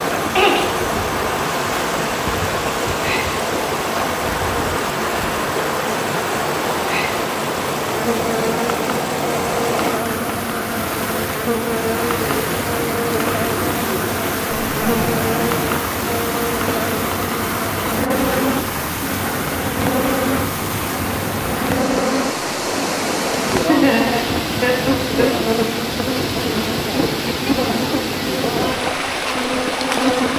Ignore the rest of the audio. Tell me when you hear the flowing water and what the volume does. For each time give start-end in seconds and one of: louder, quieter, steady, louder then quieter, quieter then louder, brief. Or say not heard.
0.0-30.3 steady.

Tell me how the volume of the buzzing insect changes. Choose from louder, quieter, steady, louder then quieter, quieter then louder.
steady.